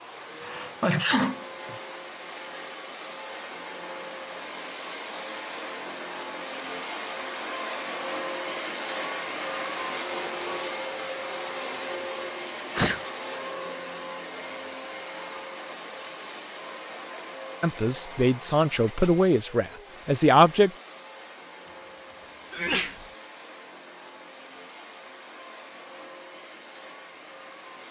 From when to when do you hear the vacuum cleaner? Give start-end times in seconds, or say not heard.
0.0-27.8.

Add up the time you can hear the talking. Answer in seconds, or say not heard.
3 s.